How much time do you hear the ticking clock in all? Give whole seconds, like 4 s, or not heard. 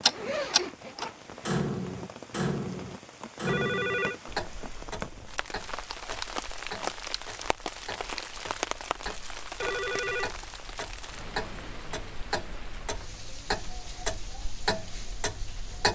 16 s.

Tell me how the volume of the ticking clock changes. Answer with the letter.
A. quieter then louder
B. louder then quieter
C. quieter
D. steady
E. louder
A.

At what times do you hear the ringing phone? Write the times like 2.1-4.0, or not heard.
3.5-4.2, 9.6-10.3.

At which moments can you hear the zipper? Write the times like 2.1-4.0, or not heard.
0.1-1.6.